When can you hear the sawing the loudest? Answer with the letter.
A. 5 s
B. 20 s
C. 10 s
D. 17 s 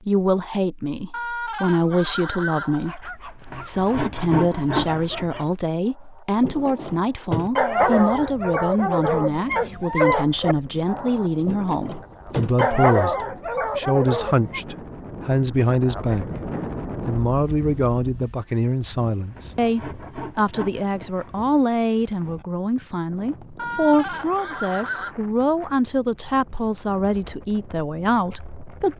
A.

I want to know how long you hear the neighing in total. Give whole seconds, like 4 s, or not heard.
4 s.